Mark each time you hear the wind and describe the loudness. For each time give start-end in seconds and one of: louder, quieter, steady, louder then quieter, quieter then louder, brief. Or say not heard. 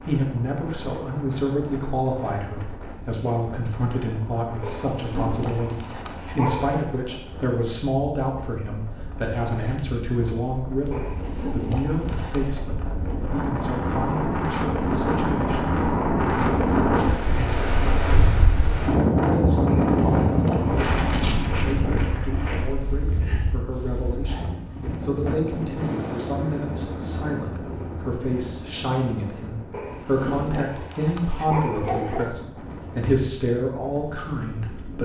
0.0-35.0 louder then quieter.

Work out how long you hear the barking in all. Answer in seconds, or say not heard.
8 s.